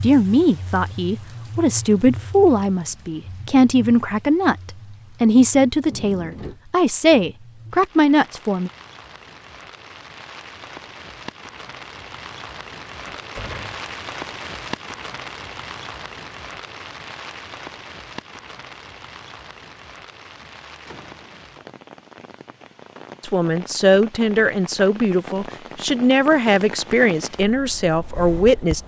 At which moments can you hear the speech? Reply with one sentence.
The speech can be heard from 0.0 to 8.7 s and from 23.2 to 28.8 s.